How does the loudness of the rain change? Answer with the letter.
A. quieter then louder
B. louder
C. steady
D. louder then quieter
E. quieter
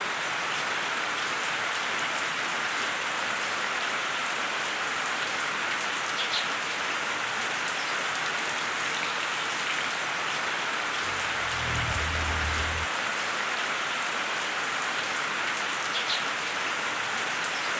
C.